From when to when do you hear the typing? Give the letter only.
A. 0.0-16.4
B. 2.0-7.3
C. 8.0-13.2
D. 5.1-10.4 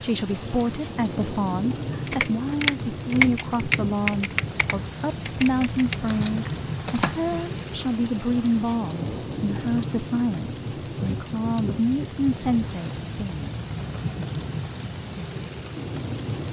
B.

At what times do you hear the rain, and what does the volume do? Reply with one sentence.
You can hear the rain from 0.0 to 16.4 s, at a steady volume.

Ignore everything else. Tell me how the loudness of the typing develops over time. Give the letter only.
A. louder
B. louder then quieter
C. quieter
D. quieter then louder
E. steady
C.